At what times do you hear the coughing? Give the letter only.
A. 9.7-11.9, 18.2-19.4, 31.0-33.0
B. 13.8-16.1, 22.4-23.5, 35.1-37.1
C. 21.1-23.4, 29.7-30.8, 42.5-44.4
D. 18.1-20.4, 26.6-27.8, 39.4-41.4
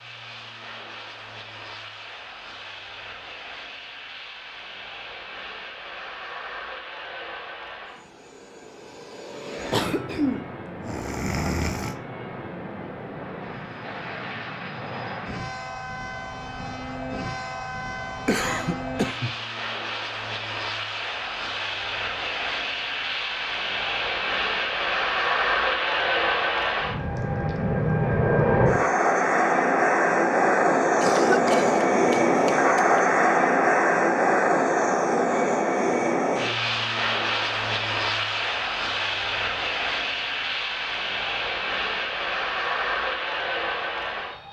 A.